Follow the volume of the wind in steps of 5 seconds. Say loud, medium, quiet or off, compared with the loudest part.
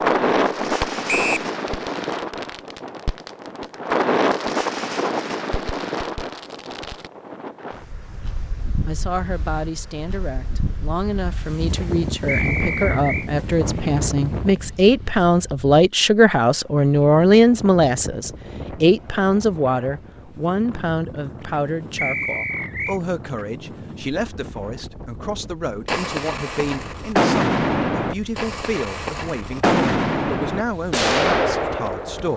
loud, medium, medium, quiet, quiet, quiet, quiet.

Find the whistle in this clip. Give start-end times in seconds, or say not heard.
1.1-1.5, 12.2-13.3, 21.9-23.0.